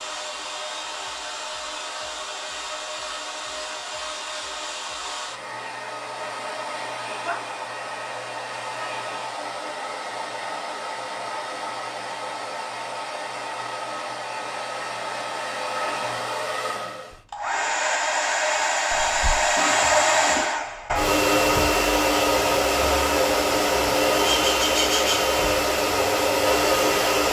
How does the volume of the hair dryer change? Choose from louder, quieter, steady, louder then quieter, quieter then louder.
louder.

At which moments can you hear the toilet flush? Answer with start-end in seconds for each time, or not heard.
19.6-20.6.